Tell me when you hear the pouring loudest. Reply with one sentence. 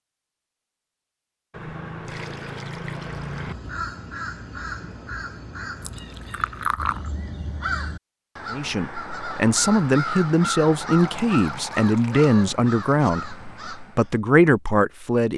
The loudest moment of the pouring is at 7 seconds.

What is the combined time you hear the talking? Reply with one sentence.
The talking can be heard for 7 seconds in total.